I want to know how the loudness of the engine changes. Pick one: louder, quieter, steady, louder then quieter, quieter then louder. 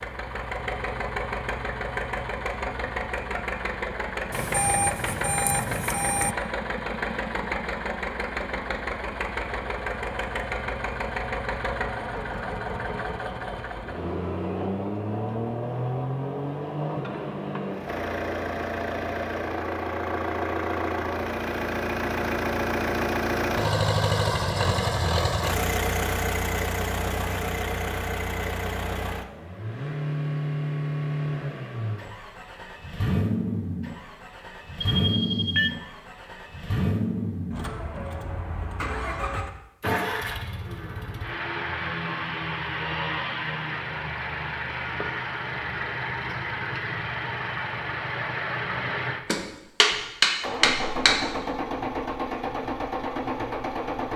steady.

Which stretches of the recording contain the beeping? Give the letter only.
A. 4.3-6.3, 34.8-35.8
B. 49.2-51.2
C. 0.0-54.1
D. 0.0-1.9
A.